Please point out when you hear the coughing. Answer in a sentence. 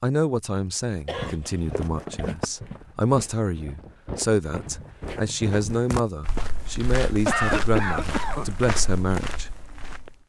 The coughing can be heard from 1.1 to 2.2 s and from 7.0 to 8.5 s.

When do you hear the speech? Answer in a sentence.
You can hear the speech from 0.0 to 9.5 s.